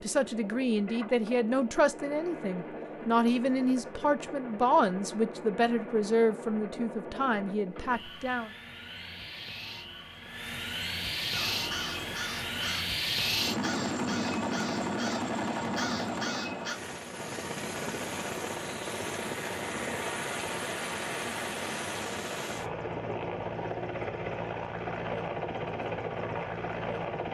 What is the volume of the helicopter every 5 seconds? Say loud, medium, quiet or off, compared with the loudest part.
medium, medium, loud, loud, loud, loud.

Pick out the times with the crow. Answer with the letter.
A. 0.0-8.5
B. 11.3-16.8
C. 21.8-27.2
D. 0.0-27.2
B.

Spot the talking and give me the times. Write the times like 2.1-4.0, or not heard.
0.0-8.5.